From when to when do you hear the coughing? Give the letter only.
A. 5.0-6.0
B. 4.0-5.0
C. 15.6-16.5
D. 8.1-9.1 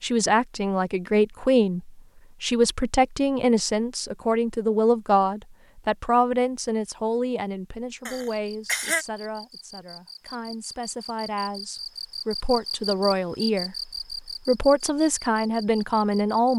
D.